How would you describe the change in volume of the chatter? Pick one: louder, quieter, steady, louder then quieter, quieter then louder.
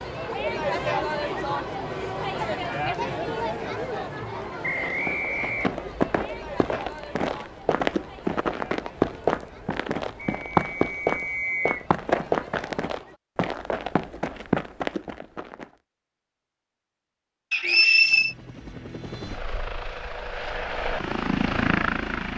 quieter.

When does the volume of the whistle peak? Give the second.
18 s.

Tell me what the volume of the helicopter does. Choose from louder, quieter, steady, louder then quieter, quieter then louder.
louder.